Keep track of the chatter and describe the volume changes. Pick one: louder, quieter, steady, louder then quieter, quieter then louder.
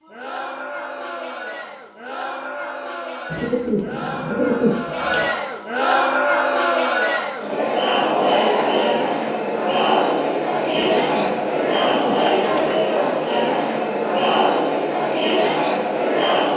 louder.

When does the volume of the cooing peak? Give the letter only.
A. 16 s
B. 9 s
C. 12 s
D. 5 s
D.